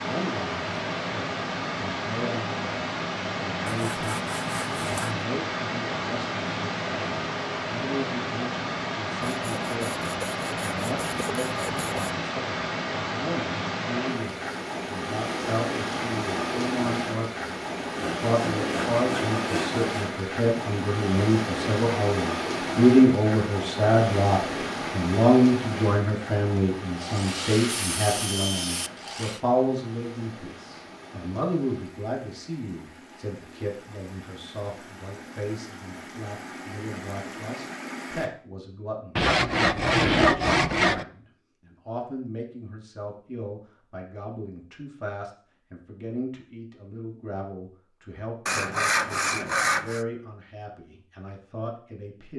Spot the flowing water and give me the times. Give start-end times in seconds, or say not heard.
0.0-38.3.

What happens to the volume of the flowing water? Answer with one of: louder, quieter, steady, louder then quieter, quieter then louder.
quieter.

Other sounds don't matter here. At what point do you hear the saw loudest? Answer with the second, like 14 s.
40 s.